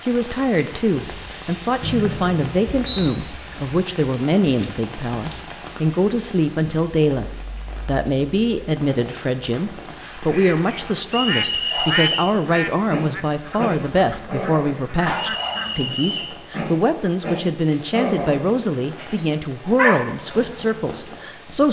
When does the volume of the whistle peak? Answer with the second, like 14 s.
12 s.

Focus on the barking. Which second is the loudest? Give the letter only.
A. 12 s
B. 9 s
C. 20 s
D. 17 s
C.